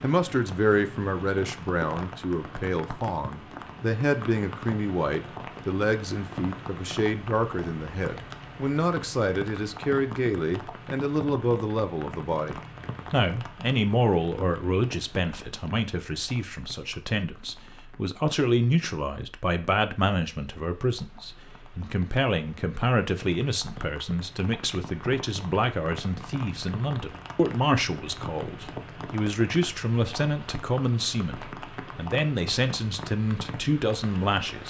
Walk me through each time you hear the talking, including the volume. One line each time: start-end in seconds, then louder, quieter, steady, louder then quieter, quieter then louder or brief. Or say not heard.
0.0-34.6 steady.